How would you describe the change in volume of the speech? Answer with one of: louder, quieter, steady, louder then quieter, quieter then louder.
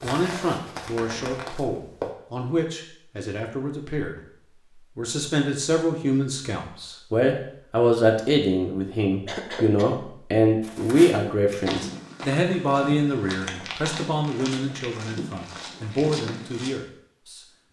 louder then quieter.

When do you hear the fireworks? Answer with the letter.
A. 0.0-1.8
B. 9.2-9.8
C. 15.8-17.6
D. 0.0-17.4
A.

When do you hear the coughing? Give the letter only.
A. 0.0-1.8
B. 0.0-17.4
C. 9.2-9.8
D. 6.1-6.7
C.